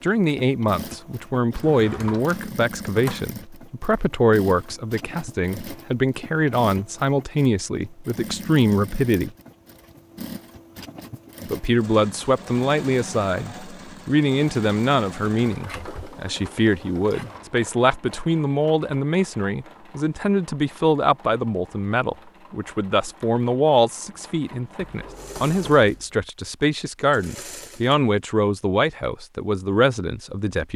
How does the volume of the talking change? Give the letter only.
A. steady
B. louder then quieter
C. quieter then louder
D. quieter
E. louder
A.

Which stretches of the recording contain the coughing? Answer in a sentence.
The coughing can't be heard in this clip.